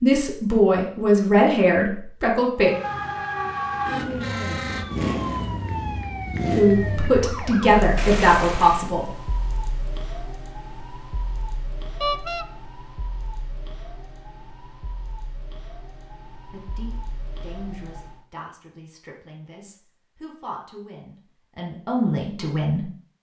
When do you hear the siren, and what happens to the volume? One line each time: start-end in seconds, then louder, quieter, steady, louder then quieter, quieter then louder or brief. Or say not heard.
2.6-18.2 quieter.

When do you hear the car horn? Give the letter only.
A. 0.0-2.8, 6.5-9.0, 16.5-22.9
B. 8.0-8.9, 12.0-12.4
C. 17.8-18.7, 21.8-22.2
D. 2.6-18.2
B.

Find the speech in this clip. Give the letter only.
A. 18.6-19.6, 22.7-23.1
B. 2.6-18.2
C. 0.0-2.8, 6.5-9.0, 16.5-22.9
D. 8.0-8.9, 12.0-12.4
C.